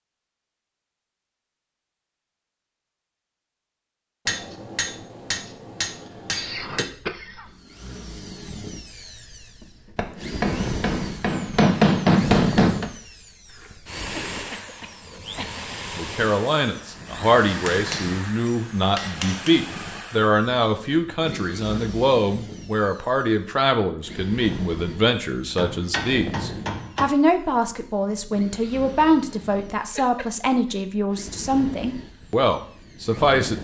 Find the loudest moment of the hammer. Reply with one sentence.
The volume of the hammer peaks at 12 seconds.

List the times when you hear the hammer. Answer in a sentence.
You can hear the hammer from 4.2 to 6.8 s, from 9.9 to 12.9 s, from 17.4 to 19.6 s and from 25.6 to 27.1 s.